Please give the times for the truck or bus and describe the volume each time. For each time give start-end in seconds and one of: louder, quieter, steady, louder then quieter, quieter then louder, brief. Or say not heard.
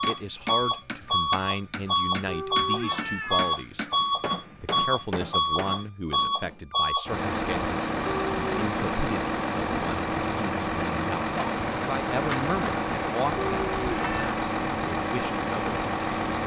0.0-16.4 steady.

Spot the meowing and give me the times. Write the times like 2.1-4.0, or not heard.
2.2-3.5, 8.1-8.6, 13.3-14.2.